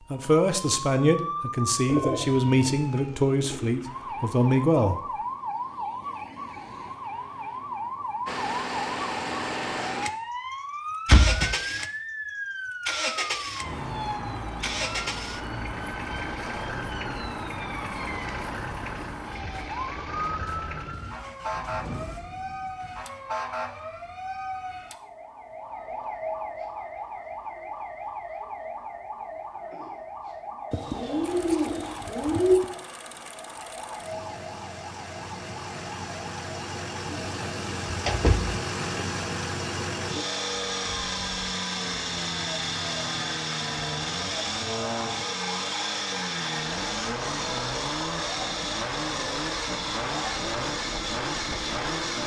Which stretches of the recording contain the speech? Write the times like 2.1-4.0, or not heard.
0.1-5.0.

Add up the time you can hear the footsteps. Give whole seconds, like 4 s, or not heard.
not heard.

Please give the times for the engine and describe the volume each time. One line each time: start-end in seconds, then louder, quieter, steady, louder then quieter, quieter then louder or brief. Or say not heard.
8.2-23.1 quieter
31.2-52.2 louder.